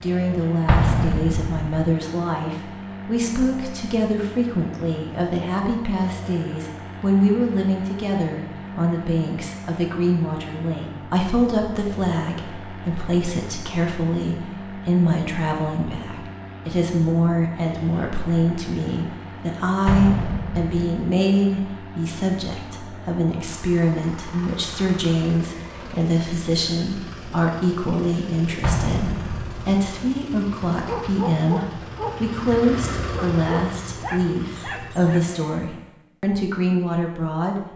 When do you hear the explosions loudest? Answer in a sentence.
The loudest moment of the explosions is at 1 second.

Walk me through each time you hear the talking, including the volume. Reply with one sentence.
You can hear the talking from 0.0 to 37.7 s, at a steady volume.